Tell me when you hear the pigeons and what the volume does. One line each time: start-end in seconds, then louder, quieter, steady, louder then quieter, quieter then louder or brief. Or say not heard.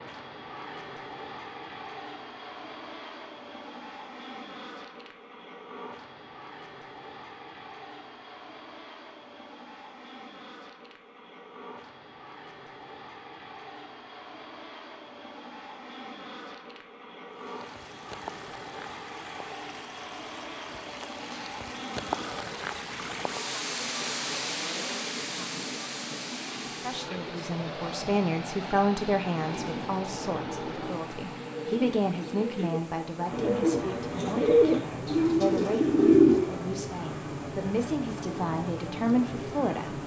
29.4-36.4 louder.